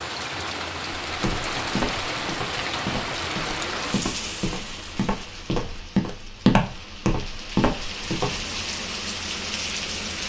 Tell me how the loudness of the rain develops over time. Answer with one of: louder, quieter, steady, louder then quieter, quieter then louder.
quieter then louder.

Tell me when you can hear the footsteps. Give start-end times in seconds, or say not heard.
1.1-8.6.